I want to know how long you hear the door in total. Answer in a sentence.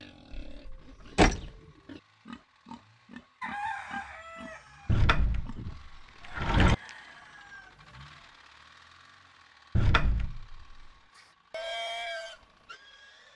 The door can be heard for 4 seconds in total.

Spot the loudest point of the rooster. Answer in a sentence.
The loudest moment of the rooster is at 4 seconds.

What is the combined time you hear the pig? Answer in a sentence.
You can hear the pig for 9 seconds altogether.